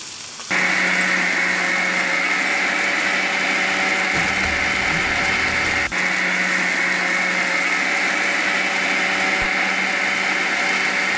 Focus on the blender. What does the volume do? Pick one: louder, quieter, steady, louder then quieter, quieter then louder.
steady.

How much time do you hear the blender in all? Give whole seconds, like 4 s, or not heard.
11 s.